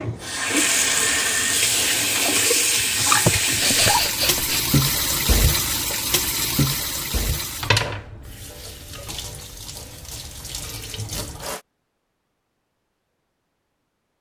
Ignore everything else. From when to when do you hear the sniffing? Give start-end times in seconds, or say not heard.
3.2-4.7.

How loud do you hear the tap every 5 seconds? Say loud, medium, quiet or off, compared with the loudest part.
loud, medium, quiet.